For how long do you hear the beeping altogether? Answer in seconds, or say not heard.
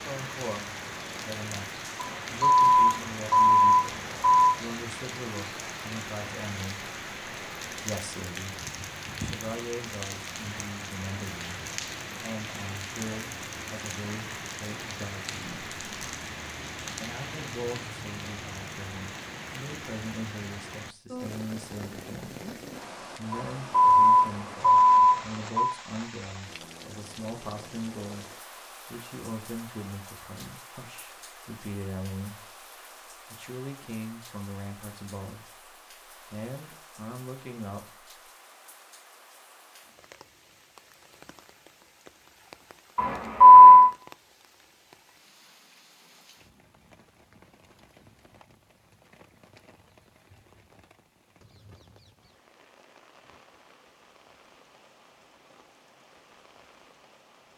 6 s.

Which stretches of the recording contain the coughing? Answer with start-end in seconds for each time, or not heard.
not heard.